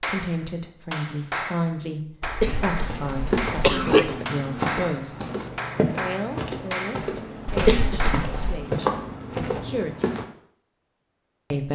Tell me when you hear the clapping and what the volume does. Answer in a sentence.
You can hear the clapping from 0.0 to 8.2 s, at a steady volume.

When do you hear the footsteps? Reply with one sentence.
The footsteps can be heard from 2.4 to 10.2 s.